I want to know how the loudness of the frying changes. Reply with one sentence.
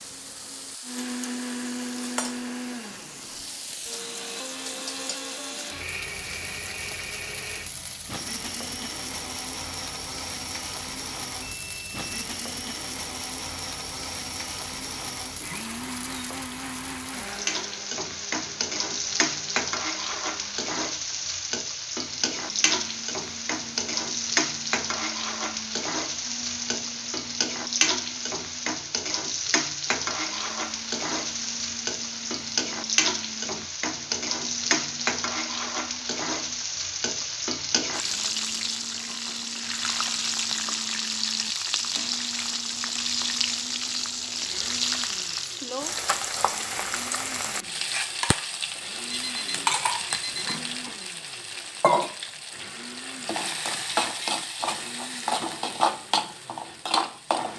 The volume of the frying goes up.